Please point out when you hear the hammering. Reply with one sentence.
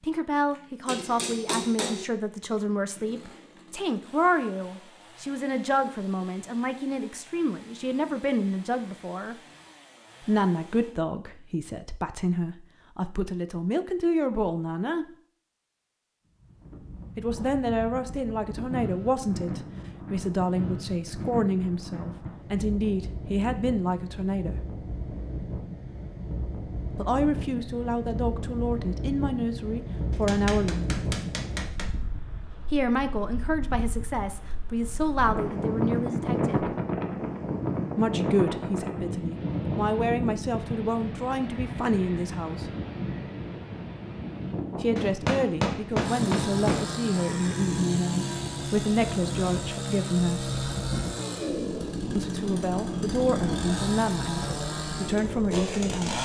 You can hear the hammering from 0.8 to 2.0 s, from 30.1 to 31.9 s and from 45.0 to 46.9 s.